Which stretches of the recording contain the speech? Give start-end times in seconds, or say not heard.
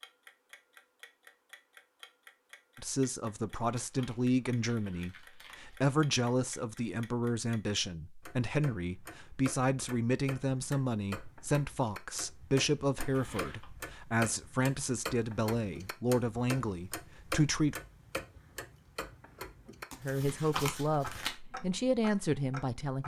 2.8-17.8, 20.0-23.0.